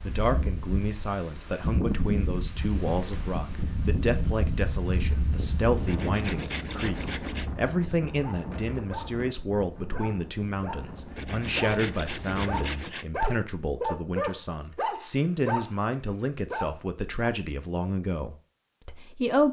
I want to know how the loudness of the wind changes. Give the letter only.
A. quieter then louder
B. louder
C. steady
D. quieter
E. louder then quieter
D.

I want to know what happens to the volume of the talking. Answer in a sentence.
The volume of the talking stays about the same.